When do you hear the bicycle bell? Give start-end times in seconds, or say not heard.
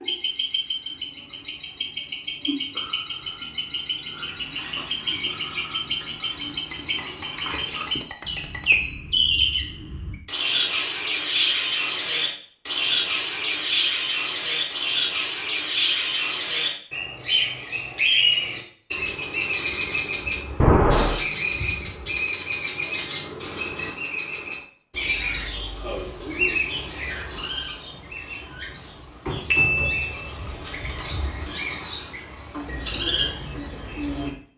6.7-8.9, 20.6-21.1, 29.5-30.3.